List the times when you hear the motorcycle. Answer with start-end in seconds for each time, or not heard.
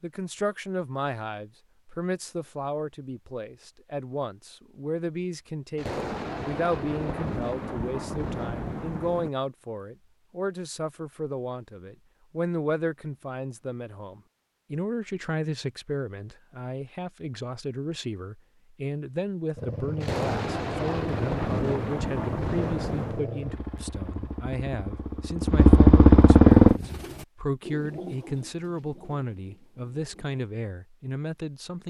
19.6-26.8.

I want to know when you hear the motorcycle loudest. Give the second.
26 s.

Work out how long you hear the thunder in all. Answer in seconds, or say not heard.
7 s.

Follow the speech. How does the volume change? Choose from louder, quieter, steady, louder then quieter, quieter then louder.
steady.